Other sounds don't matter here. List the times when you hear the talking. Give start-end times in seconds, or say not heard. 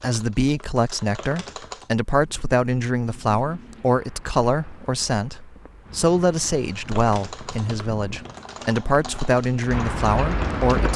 0.0-10.9.